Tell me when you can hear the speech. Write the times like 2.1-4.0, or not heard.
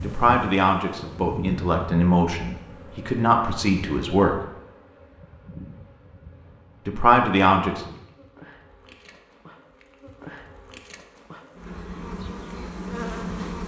0.0-4.4, 6.8-7.9.